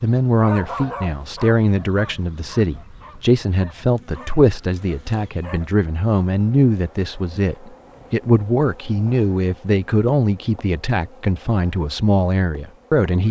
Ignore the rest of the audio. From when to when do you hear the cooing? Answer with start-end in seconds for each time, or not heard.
not heard.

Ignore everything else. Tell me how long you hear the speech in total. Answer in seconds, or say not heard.
13 s.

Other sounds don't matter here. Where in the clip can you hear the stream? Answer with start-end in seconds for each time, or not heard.
not heard.